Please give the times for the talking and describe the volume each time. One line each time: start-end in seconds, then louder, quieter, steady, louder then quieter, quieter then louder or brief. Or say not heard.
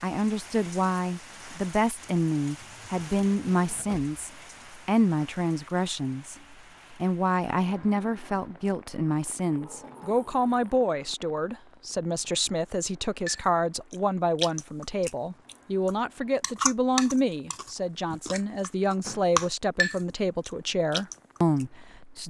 0.0-22.2 steady.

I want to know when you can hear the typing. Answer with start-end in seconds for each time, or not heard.
not heard.